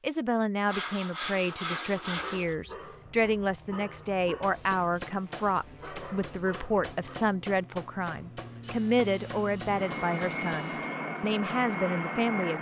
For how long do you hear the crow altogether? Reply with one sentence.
The crow can't be heard in this clip.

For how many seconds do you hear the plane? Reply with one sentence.
The plane can be heard for 10 seconds in total.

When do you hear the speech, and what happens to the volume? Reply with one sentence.
The speech can be heard from 0.0 to 12.5 s, at a steady volume.